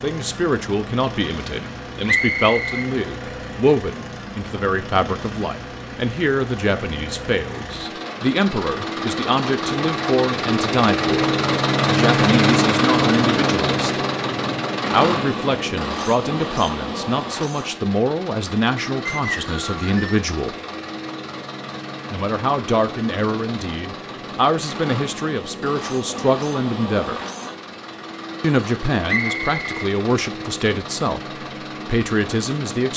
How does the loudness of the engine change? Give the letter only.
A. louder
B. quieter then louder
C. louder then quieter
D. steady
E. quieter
C.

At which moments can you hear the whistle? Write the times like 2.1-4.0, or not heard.
2.0-2.9, 19.1-20.2, 29.1-29.6.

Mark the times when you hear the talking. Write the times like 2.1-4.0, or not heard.
0.0-11.2, 11.8-14.0, 14.9-20.6, 22.1-27.2, 28.4-32.9.